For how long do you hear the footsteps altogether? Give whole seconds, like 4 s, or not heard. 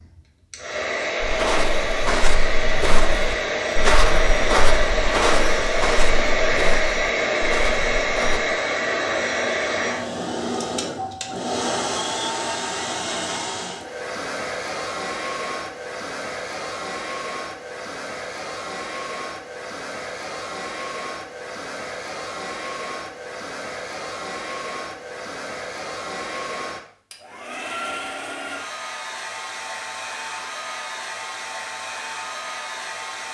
7 s.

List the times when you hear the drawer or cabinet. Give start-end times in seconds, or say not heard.
not heard.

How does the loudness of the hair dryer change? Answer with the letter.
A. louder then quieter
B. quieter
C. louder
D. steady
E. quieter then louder
B.